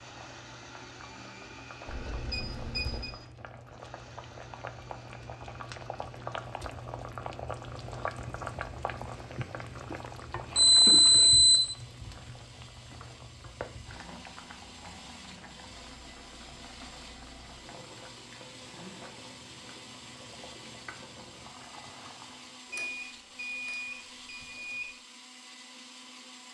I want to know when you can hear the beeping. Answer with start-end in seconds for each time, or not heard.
1.9-3.1, 10.6-11.7, 22.7-24.9.